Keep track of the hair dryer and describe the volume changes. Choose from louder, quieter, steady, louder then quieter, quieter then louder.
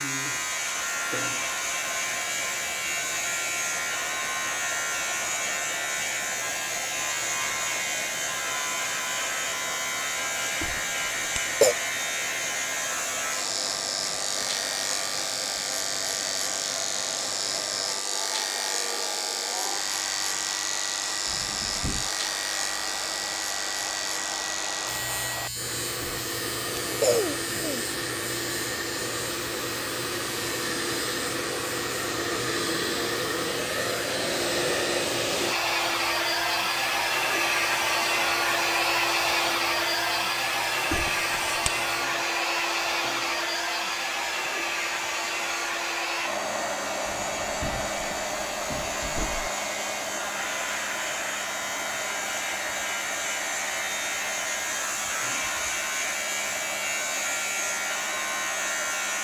louder then quieter.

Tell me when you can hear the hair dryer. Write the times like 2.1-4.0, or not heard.
0.0-59.1.